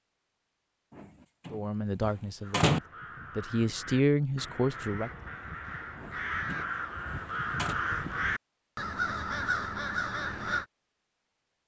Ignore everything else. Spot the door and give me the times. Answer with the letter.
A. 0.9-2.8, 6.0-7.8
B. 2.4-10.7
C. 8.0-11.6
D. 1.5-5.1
A.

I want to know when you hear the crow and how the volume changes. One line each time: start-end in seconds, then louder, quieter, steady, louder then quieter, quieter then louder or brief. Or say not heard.
2.4-10.7 louder.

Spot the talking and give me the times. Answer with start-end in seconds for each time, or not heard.
1.5-5.1.